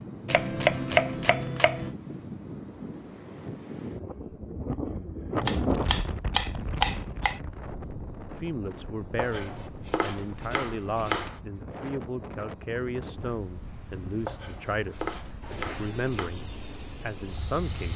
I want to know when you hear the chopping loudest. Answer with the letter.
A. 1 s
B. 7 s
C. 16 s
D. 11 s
A.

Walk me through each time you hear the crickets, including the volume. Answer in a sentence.
You can hear the crickets from 0.0 to 17.9 s, getting quieter then louder.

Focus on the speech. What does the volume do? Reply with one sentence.
The loudness of the speech stays about the same.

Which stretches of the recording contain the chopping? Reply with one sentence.
The chopping can be heard from 0.2 to 1.9 s, from 5.4 to 7.4 s, from 9.2 to 11.4 s and from 14.2 to 16.3 s.